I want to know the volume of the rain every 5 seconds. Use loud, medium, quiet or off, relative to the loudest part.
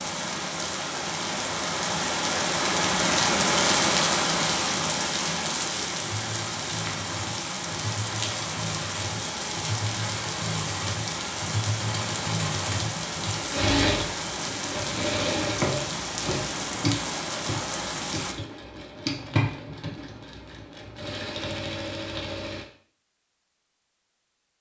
loud, medium, medium, medium, off.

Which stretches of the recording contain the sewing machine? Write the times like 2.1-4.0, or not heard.
6.0-22.6.